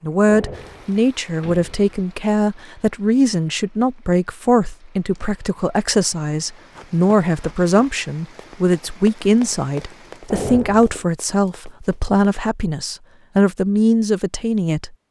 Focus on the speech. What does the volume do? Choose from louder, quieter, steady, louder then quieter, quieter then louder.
steady.